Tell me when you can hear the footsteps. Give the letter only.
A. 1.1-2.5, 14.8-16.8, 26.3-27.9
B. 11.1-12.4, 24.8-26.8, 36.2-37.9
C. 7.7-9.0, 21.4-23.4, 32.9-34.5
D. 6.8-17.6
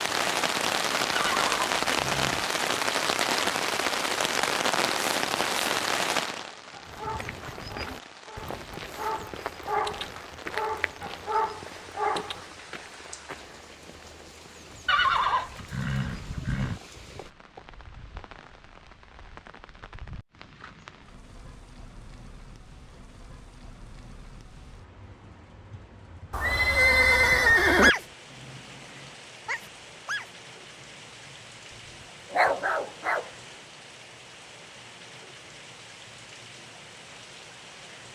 D.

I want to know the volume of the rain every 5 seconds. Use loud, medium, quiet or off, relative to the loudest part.
loud, medium, quiet, quiet, quiet, quiet, quiet, quiet.